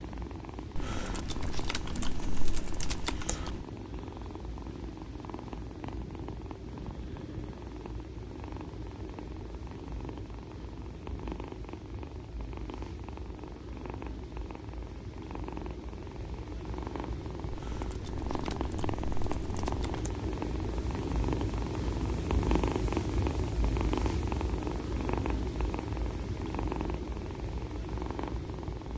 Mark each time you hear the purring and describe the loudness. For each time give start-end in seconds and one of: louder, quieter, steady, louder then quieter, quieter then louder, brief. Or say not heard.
0.0-28.9 louder.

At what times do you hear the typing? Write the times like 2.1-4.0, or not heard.
0.8-3.6, 17.5-20.1.